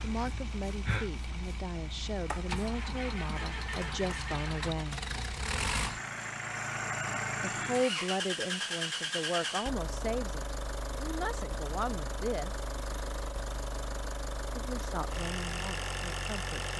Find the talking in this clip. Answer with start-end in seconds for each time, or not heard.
0.0-5.0, 7.4-12.6, 14.6-16.7.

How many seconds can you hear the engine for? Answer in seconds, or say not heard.
17 s.